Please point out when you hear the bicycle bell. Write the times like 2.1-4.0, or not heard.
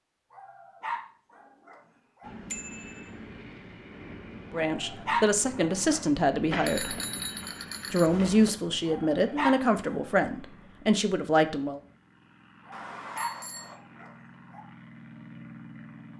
2.5-3.1, 6.5-8.5, 12.7-13.8.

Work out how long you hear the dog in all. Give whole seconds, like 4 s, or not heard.
7 s.